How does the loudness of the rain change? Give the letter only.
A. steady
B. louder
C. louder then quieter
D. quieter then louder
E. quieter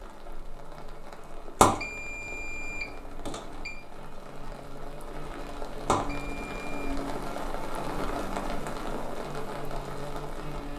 B.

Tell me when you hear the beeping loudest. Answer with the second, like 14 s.
2 s.